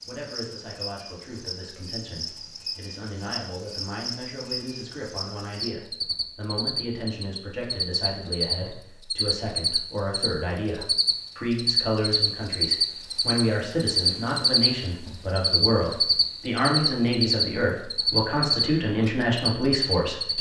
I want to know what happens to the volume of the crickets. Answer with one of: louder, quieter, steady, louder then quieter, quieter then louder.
louder.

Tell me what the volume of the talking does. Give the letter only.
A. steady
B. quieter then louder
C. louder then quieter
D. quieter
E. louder
E.